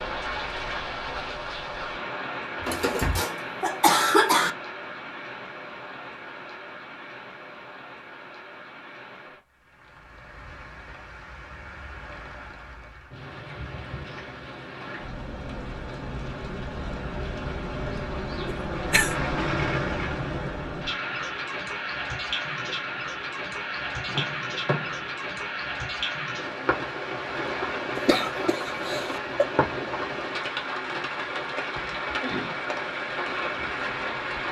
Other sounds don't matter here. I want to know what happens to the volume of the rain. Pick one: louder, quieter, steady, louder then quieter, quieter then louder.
quieter then louder.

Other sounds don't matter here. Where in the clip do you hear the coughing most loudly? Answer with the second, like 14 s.
4 s.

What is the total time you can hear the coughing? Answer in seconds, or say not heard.
4 s.